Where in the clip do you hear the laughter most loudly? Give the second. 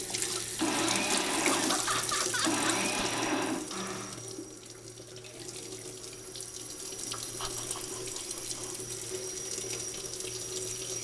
2 s.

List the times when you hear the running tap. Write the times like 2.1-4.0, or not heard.
0.0-10.9.